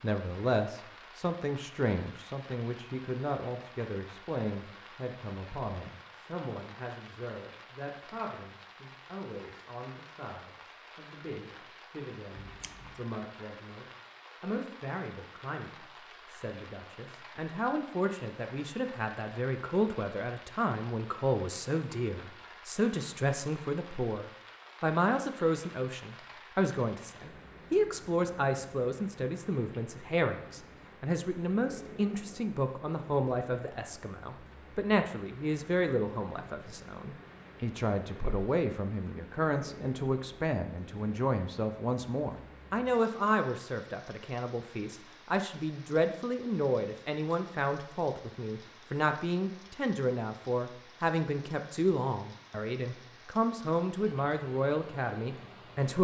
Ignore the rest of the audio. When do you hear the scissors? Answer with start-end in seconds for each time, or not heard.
12.3-13.1.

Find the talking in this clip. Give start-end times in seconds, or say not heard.
0.0-55.9.